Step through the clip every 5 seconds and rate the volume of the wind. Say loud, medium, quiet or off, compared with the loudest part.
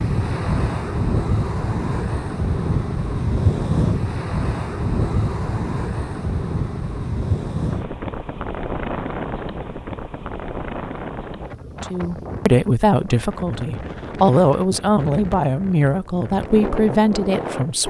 loud, loud, medium, medium.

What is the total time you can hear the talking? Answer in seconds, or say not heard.
6 s.